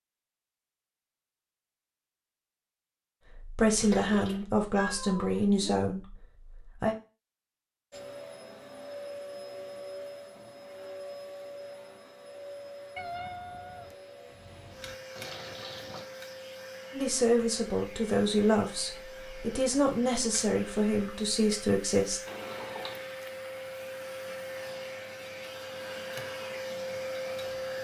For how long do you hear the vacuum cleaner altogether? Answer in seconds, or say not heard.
20 s.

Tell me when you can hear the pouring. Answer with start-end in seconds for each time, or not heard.
3.8-4.5, 15.2-16.1, 22.2-23.1.